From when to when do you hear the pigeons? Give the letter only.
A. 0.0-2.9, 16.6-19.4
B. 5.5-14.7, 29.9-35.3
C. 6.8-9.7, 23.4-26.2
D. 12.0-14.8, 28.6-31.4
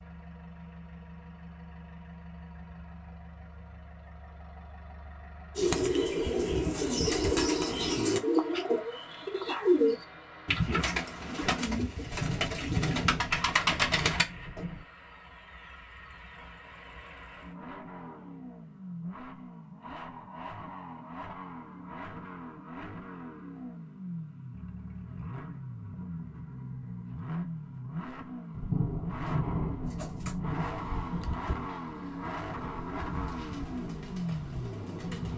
B.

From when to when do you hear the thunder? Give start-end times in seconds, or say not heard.
12.0-14.8, 28.6-31.4.